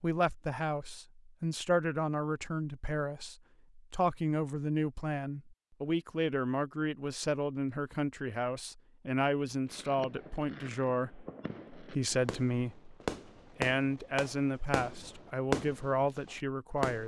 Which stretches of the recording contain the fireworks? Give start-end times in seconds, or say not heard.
9.7-17.0.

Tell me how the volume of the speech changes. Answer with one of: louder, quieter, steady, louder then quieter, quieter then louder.
steady.